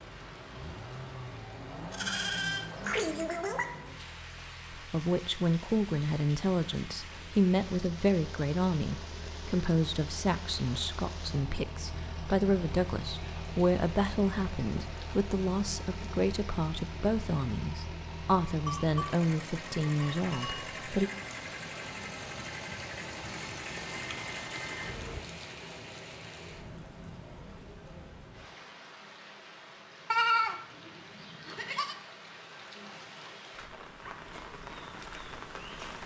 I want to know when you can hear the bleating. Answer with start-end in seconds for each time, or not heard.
1.9-3.6, 18.6-20.6, 30.1-31.9.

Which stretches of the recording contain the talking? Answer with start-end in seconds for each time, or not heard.
4.7-21.1.